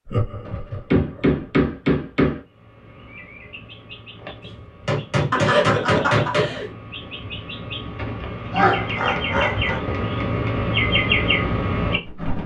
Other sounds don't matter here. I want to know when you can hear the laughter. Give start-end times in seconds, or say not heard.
0.1-1.4, 5.3-6.7, 8.5-9.8.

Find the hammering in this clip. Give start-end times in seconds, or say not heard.
0.5-2.4, 4.4-6.5, 8.6-10.6.